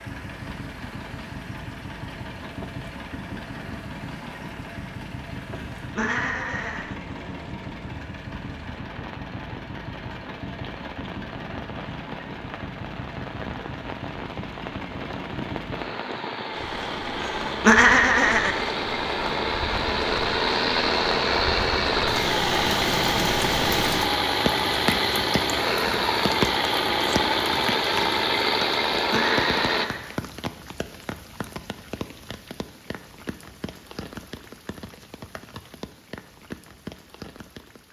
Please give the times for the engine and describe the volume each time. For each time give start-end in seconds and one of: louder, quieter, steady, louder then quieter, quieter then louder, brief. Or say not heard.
0.0-29.9 louder.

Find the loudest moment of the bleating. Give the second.
18 s.